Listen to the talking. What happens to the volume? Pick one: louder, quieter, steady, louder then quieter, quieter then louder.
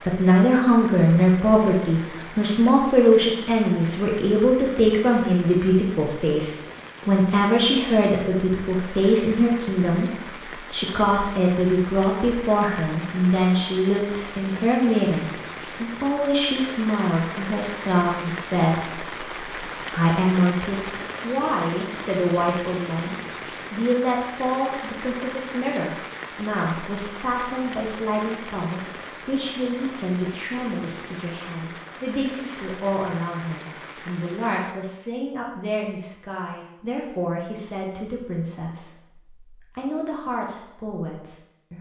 quieter.